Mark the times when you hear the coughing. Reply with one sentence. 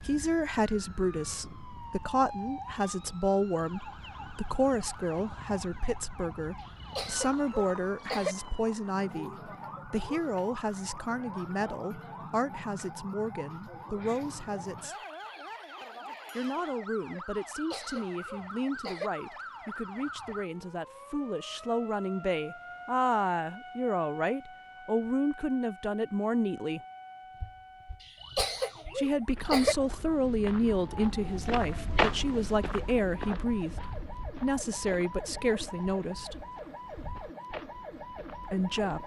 The coughing can be heard from 6.7 to 8.3 s, from 17.6 to 19.1 s and from 28.2 to 29.8 s.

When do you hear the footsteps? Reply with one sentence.
You can hear the footsteps from 27.3 to 39.0 s.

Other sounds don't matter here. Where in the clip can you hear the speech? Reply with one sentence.
The speech can be heard from 0.0 to 14.9 s, from 16.4 to 26.8 s, from 28.9 to 36.5 s and from 38.5 to 39.0 s.